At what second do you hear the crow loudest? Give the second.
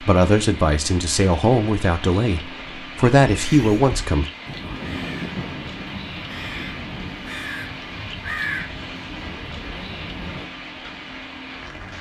8 s.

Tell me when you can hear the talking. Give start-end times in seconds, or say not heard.
0.0-4.2.